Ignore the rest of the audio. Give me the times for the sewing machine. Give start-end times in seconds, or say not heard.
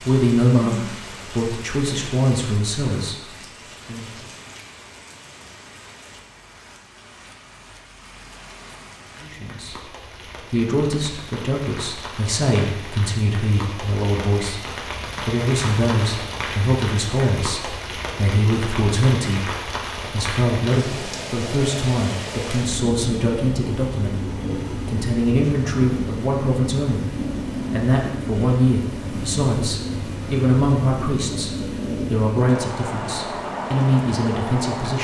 not heard.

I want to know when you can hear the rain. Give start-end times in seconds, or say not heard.
0.0-34.9.